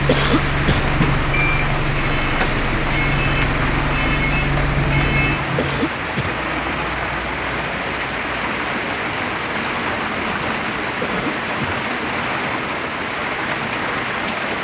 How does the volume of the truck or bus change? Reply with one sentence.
The loudness of the truck or bus stays about the same.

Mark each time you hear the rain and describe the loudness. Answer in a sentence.
You can hear the rain from 0.0 to 14.5 s, at a steady volume.